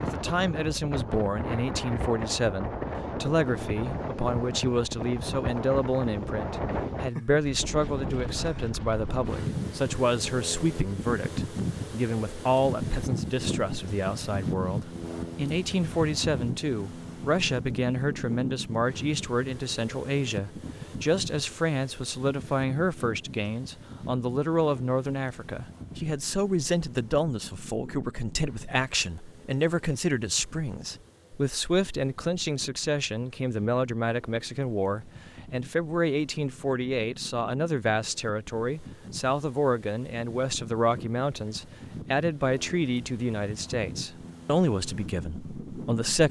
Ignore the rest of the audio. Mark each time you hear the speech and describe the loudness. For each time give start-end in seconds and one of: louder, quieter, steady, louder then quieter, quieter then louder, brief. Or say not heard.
0.0-46.2 steady.